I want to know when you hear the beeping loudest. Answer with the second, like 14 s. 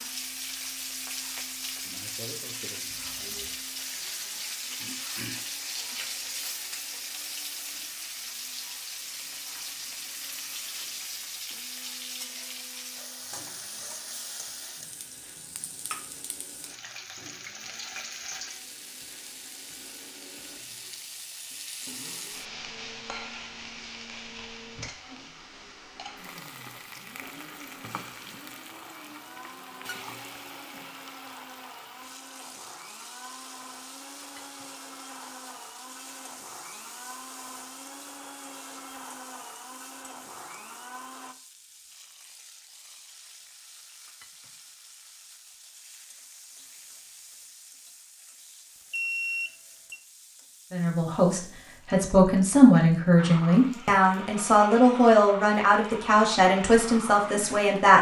49 s.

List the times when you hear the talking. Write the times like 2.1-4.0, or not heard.
50.7-57.9.